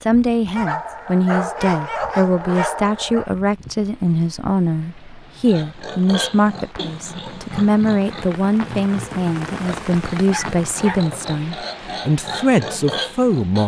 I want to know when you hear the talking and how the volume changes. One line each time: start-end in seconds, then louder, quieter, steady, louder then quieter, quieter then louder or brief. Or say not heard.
0.0-13.6 steady.